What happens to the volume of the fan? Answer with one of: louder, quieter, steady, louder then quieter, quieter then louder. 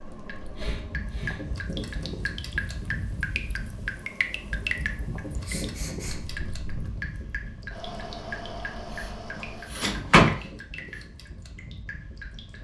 quieter.